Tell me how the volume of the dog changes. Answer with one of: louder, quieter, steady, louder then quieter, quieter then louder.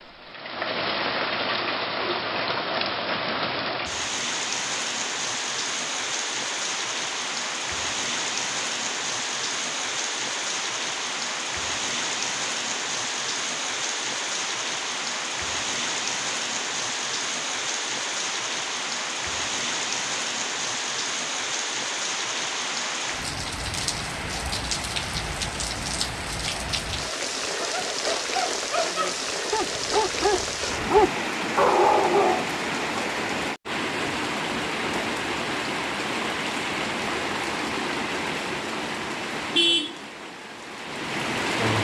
louder.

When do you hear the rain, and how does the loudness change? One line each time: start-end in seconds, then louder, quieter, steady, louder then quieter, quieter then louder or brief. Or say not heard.
0.0-41.7 steady.